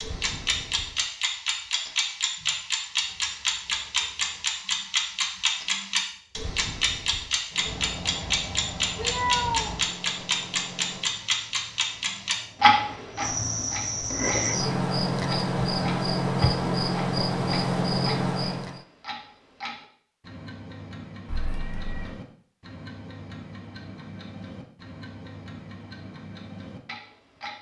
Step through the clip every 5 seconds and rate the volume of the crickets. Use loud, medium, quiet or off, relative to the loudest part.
quiet, quiet, medium, loud, off, off.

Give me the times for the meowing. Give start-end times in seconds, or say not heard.
7.7-9.8, 21.2-22.1.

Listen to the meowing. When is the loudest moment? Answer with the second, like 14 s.
9 s.